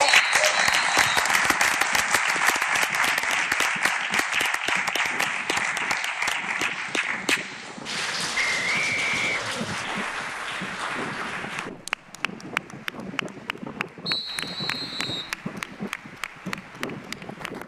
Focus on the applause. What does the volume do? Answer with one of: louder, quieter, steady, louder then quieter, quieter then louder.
quieter.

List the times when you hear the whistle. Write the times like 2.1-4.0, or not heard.
0.1-1.3, 8.3-9.6, 14.1-15.3.